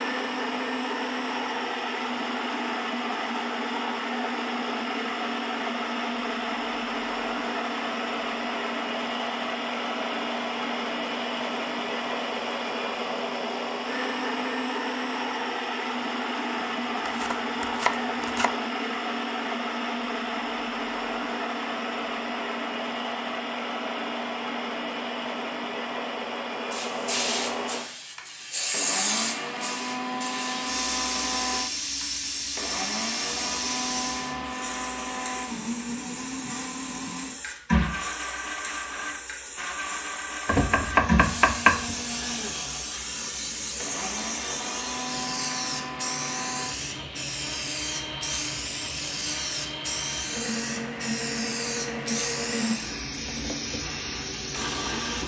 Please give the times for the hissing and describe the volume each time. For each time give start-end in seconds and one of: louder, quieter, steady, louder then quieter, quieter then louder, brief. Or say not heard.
26.7-55.2 steady.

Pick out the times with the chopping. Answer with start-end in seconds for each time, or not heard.
16.6-18.6, 40.5-42.0.